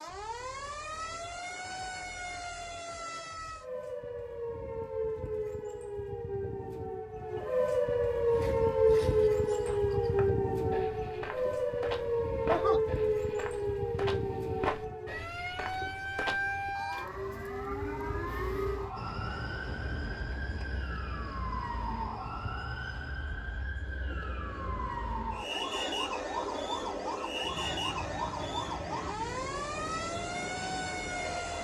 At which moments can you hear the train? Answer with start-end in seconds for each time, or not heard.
18.9-31.5.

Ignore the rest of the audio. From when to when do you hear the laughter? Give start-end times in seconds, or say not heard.
12.0-12.8.